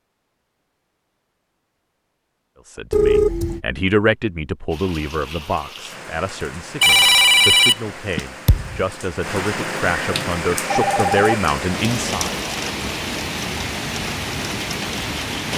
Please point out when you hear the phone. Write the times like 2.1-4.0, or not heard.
2.9-3.6, 6.8-8.2, 10.7-11.4.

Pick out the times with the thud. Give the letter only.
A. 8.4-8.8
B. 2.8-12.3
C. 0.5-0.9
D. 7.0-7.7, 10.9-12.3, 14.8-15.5
A.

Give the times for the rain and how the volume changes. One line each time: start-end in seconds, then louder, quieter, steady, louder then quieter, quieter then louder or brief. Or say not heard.
4.7-15.5 louder.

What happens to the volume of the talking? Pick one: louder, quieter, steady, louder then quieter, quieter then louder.
quieter then louder.